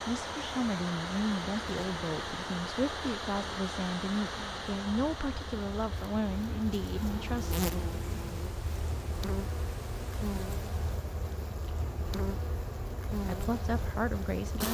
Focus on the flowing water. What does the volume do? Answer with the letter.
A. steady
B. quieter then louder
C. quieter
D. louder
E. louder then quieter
C.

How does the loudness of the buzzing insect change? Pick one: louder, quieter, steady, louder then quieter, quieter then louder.
louder.